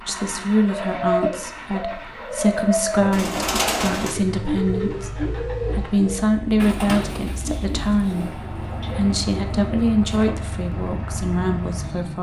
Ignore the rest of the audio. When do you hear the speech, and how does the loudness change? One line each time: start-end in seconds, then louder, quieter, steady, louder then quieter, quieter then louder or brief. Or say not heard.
0.1-12.1 steady.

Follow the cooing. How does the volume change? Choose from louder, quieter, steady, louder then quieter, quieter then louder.
quieter.